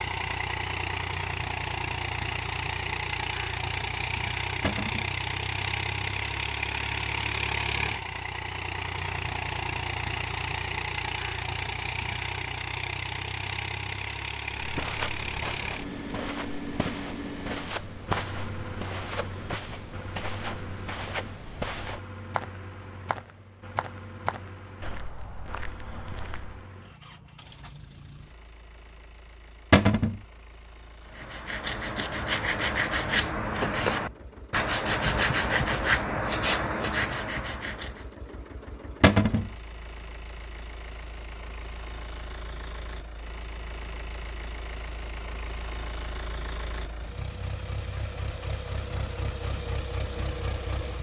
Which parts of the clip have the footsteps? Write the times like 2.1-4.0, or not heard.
14.5-26.6.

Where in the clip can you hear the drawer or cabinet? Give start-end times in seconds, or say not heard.
4.6-5.1, 29.7-30.2, 39.0-39.5.